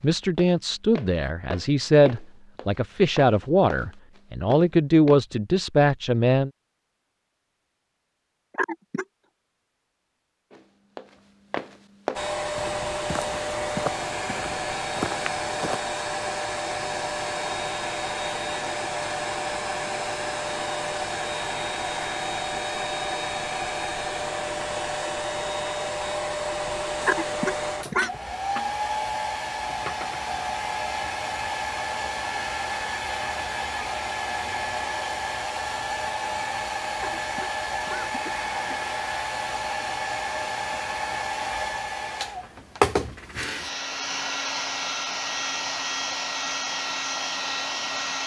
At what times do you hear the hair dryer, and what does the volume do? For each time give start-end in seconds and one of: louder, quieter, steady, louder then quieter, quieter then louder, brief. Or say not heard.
12.2-48.2 steady.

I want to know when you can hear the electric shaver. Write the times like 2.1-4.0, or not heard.
not heard.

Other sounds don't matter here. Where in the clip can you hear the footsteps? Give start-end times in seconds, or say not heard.
0.0-5.2, 10.5-15.8.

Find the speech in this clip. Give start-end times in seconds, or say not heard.
0.0-6.5.